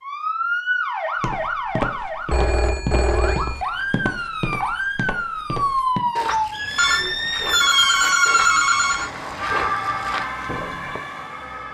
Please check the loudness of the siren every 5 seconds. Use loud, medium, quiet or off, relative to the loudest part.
loud, loud, medium.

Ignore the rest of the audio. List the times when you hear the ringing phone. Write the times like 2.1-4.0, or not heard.
2.2-3.6, 6.8-9.1.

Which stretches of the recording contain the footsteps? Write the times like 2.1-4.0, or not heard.
1.2-11.0.